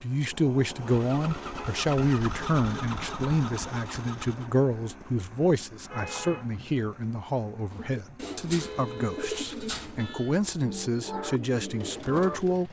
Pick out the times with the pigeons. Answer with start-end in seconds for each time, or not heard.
7.7-12.6.